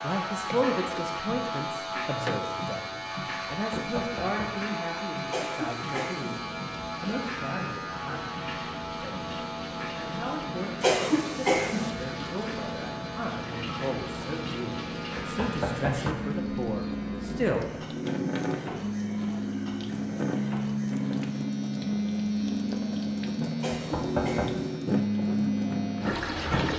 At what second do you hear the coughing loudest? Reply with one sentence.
The loudest moment of the coughing is at 11 seconds.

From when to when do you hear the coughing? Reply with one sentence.
The coughing can be heard from 5.3 to 6.4 s, from 10.8 to 11.9 s and from 23.6 to 24.7 s.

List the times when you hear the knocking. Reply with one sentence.
You can hear the knocking from 3.7 to 4.6 s, from 15.2 to 16.3 s and from 23.7 to 24.5 s.